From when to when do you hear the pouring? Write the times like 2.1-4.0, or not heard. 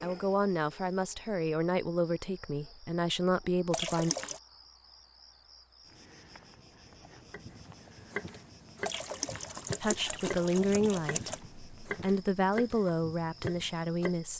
3.7-4.4, 8.8-11.4.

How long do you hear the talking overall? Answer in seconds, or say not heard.
9 s.